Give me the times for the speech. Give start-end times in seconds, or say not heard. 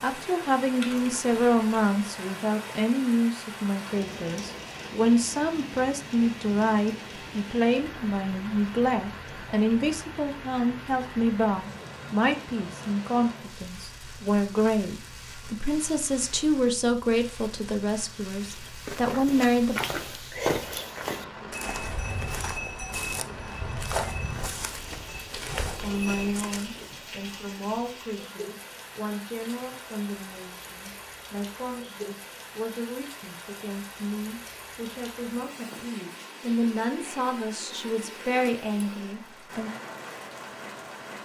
0.0-19.8, 25.8-39.7.